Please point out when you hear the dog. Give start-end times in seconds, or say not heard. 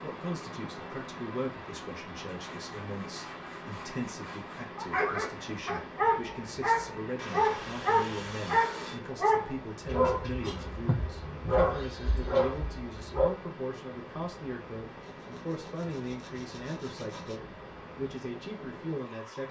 4.8-13.3.